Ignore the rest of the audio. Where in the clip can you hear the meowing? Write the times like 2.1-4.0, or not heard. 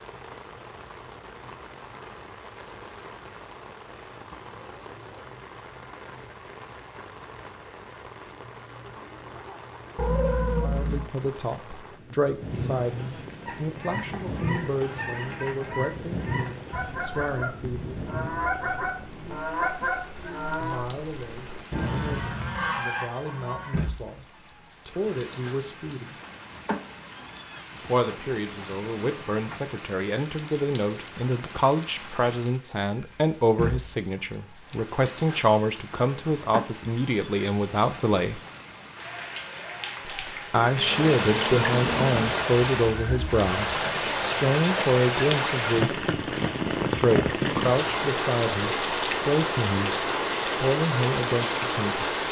9.9-11.1.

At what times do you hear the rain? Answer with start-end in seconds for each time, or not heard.
0.0-52.2.